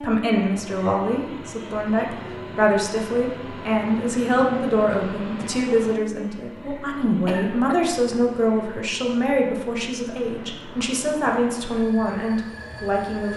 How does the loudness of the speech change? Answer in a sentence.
The loudness of the speech stays about the same.